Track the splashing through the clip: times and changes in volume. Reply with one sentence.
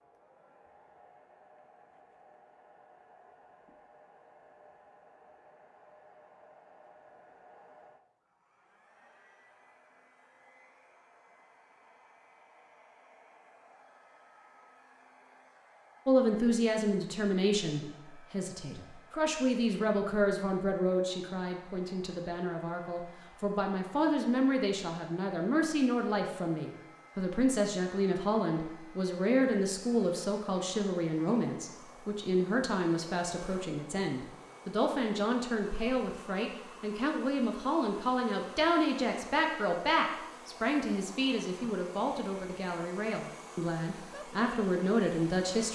You can't hear the splashing here.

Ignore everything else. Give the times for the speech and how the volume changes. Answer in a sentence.
You can hear the speech from 16.1 to 45.7 s, at a steady volume.